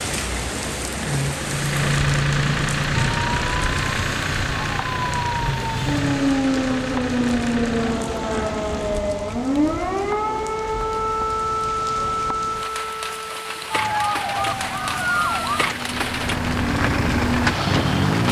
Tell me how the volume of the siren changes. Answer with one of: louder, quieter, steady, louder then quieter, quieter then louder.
steady.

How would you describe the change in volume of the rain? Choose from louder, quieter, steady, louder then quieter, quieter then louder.
quieter then louder.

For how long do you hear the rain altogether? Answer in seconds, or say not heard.
18 s.